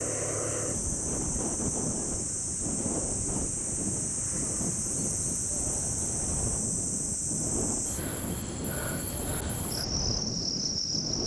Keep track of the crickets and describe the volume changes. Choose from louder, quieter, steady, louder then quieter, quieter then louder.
steady.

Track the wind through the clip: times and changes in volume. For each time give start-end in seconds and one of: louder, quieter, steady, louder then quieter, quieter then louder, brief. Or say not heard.
0.0-11.2 steady.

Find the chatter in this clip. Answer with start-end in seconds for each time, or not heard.
not heard.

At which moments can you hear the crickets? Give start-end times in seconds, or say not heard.
0.0-11.2.